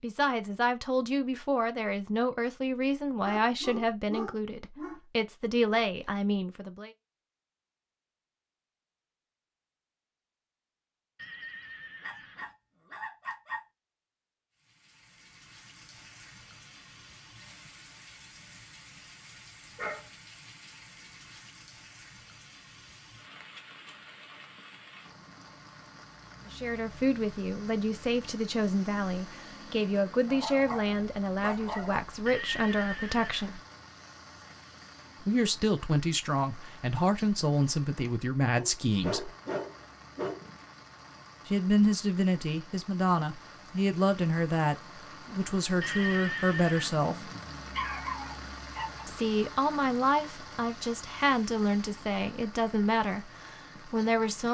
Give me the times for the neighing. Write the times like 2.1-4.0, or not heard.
11.2-12.6, 32.2-33.6, 45.8-47.0.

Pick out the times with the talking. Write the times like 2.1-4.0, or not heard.
0.0-6.9, 26.5-33.6, 35.2-39.3, 41.5-47.3, 49.0-54.4.